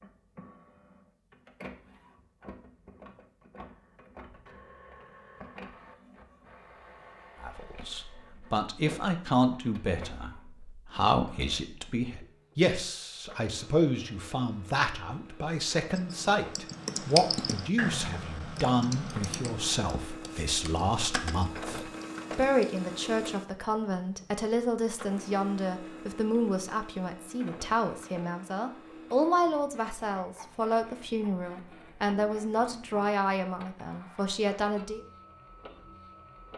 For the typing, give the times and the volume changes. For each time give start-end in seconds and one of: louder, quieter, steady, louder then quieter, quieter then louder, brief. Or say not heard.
15.9-22.9 quieter.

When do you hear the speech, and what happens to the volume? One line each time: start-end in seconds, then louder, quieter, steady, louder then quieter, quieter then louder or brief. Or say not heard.
7.4-35.0 steady.